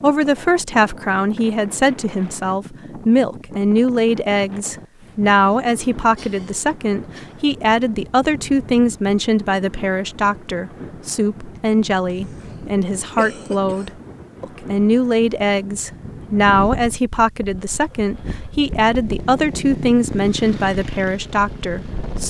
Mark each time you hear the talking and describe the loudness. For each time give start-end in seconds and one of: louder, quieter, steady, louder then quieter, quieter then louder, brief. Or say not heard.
0.0-22.2 steady.